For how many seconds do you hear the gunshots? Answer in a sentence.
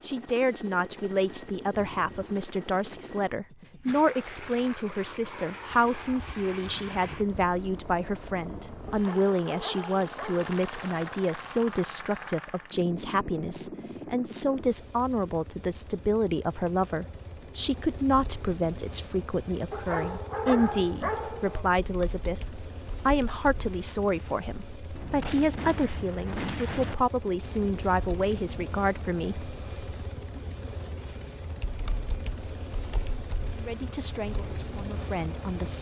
The gunshots can be heard for 4 seconds in total.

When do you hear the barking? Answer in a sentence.
You can hear the barking from 8.8 to 10.5 s and from 19.7 to 21.7 s.